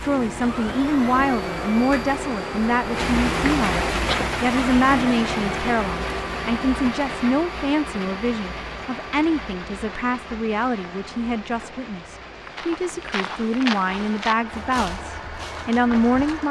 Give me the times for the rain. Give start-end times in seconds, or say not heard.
0.0-16.4.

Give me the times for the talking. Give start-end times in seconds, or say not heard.
0.0-16.4.